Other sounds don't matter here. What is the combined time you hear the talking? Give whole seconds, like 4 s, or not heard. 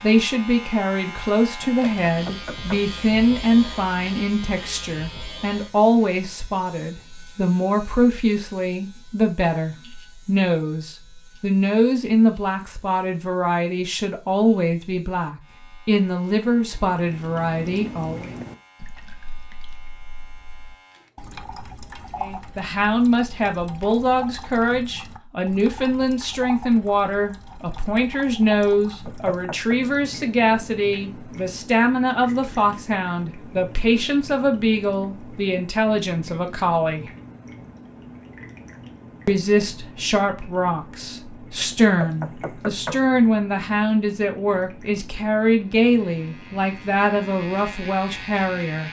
43 s.